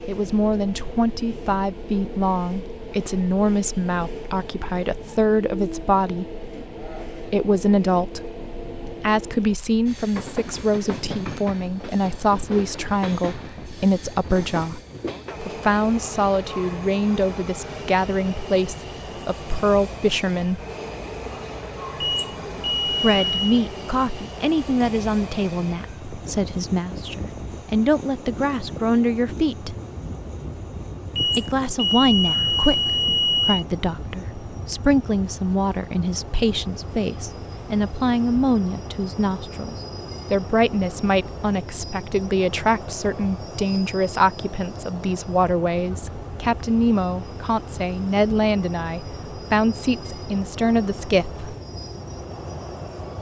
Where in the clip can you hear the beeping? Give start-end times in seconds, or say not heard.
21.9-23.5, 31.1-33.6.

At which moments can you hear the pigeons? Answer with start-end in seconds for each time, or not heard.
not heard.